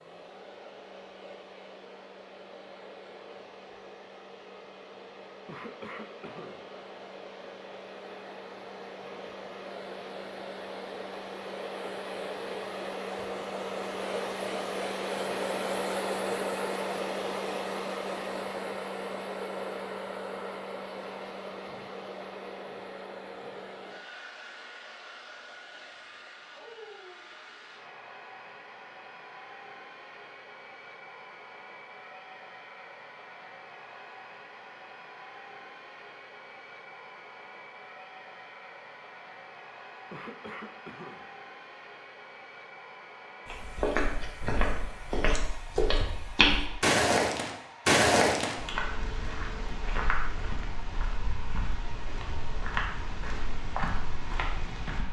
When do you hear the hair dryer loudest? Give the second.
16 s.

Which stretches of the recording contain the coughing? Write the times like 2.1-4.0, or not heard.
5.5-6.7, 40.1-41.4.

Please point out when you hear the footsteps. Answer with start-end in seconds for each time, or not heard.
43.5-55.0.